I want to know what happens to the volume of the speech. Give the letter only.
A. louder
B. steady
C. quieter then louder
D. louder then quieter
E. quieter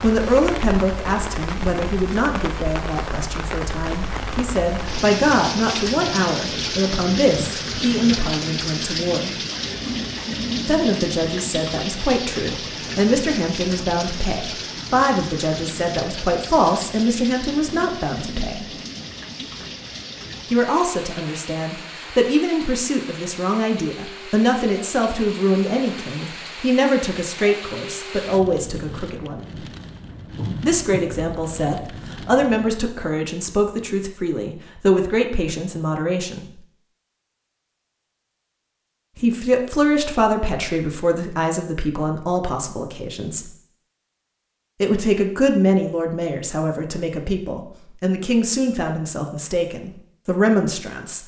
B.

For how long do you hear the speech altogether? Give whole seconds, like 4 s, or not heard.
43 s.